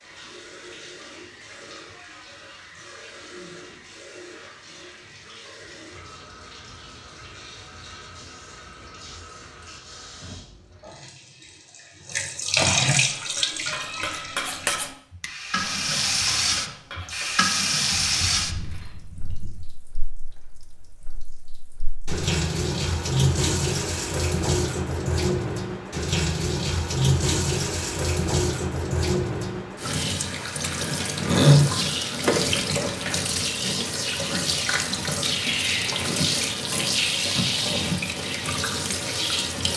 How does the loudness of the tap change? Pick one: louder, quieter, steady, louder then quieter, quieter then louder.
louder.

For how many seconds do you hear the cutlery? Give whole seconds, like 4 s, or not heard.
7 s.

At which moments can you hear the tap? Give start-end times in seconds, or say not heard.
0.0-39.7.